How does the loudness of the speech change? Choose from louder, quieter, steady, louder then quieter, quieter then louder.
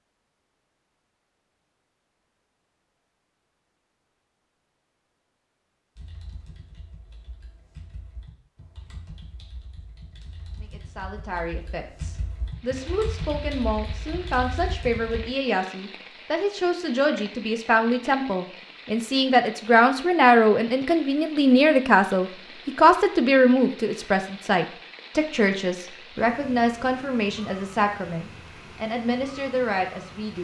louder then quieter.